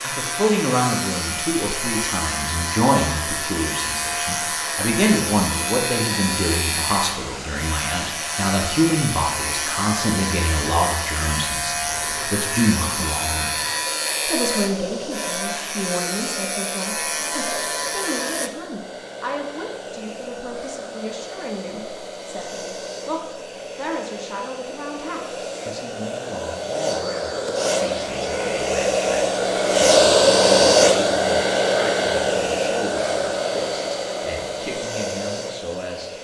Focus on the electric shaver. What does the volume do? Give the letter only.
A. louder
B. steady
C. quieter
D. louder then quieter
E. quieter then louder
B.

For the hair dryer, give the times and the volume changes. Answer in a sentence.
You can hear the hair dryer from 0.0 to 36.1 s, getting louder.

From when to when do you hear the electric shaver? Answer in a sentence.
You can hear the electric shaver from 0.0 to 18.5 s.